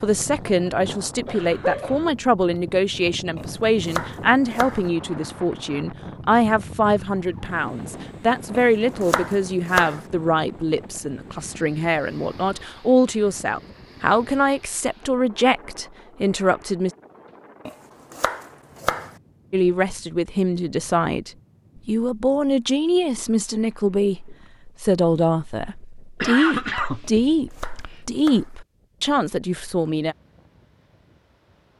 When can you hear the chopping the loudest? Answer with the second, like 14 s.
10 s.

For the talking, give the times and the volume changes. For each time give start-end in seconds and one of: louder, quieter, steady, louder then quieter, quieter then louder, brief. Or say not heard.
0.0-16.9 steady
19.5-30.1 steady.